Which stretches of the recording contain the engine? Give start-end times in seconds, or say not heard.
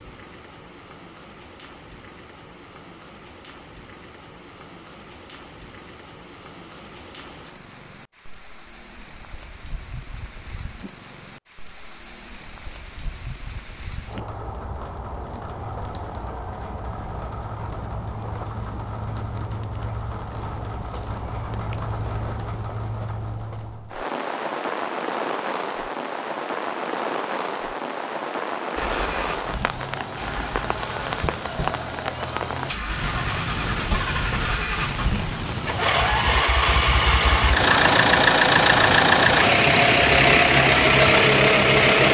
28.8-42.0.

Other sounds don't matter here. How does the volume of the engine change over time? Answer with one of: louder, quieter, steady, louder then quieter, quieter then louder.
louder.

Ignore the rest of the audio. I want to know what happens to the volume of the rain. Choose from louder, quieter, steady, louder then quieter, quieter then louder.
louder.